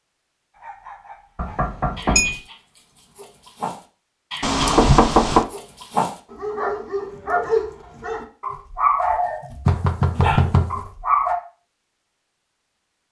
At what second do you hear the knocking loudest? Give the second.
5 s.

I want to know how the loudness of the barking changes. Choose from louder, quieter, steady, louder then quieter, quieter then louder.
louder.